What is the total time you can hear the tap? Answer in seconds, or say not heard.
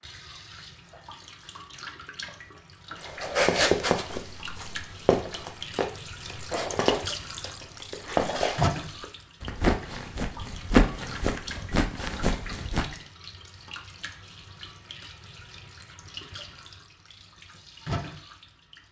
19 s.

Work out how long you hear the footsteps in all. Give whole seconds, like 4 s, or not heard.
10 s.